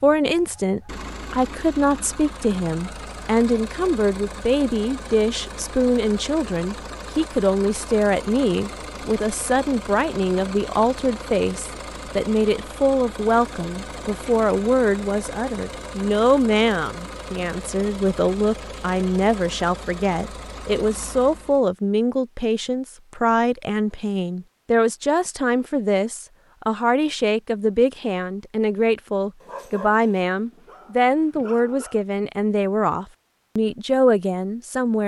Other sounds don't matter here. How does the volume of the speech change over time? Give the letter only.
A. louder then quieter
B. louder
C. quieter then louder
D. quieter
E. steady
E.